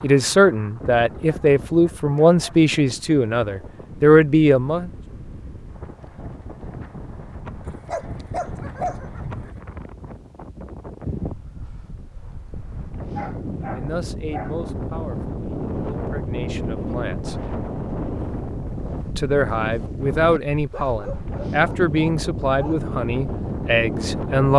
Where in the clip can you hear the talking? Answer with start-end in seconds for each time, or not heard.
0.0-4.9, 13.8-17.4, 19.1-24.5.